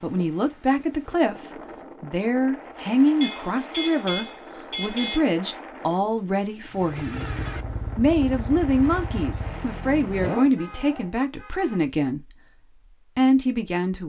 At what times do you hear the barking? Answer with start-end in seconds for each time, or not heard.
not heard.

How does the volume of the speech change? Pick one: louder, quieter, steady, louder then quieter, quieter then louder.
steady.